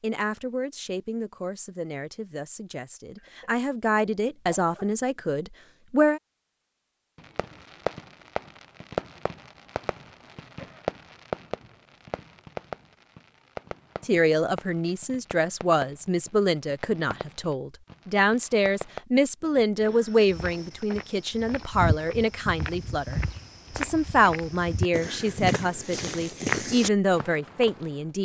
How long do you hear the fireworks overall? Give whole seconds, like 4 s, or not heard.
12 s.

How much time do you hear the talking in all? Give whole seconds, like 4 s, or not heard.
20 s.